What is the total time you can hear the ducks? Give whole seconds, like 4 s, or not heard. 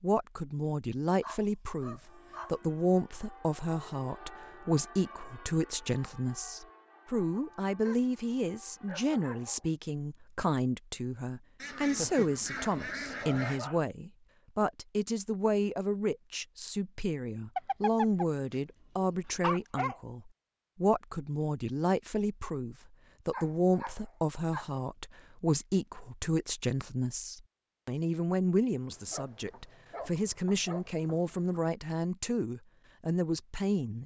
2 s.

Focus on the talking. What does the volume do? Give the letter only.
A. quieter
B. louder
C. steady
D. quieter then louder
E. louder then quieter
C.